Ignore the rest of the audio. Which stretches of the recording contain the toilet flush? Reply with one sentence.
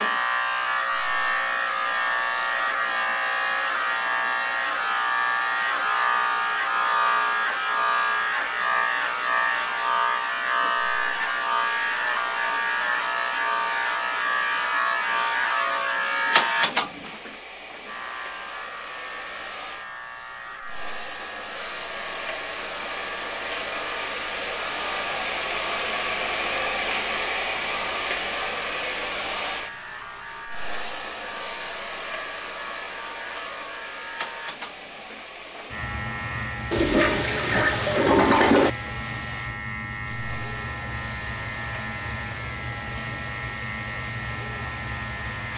You can hear the toilet flush from 36.7 to 38.7 s.